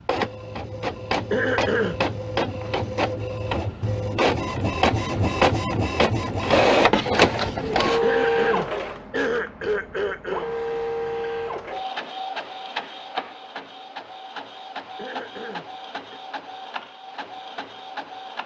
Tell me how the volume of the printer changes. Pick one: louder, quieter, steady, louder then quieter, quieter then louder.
louder then quieter.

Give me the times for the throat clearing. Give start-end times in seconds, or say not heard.
1.3-2.0, 8.0-10.6, 14.9-16.2.